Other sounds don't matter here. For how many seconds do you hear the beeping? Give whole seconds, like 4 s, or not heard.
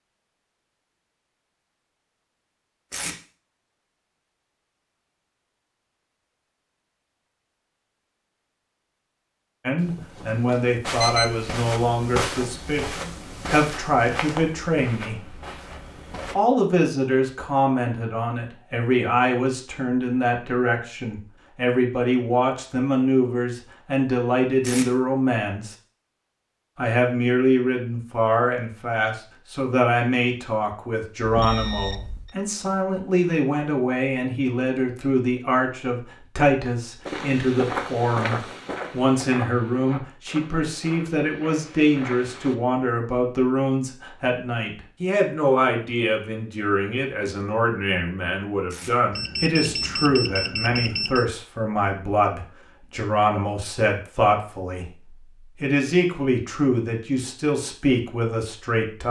5 s.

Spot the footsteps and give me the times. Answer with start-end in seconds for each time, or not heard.
10.8-16.4, 37.0-42.5.